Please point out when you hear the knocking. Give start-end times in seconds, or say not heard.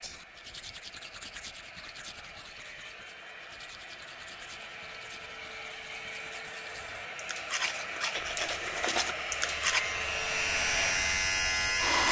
not heard.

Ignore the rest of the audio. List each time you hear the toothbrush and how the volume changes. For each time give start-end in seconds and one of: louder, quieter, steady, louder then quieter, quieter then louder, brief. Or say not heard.
0.0-9.8 quieter then louder.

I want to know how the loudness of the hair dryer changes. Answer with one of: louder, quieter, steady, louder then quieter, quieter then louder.
louder.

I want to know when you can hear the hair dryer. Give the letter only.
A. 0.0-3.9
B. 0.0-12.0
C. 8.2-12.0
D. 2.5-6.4
B.